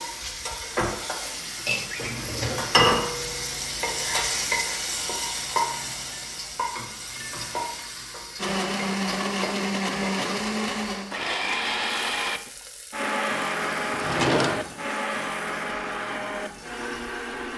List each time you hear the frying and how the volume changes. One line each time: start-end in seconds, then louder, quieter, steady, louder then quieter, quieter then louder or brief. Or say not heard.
0.0-17.5 quieter.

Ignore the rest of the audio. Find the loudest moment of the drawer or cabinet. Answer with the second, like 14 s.
14 s.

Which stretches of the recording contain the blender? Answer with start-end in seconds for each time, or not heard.
8.3-17.5.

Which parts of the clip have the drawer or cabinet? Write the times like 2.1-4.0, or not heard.
1.9-2.8, 13.9-14.8.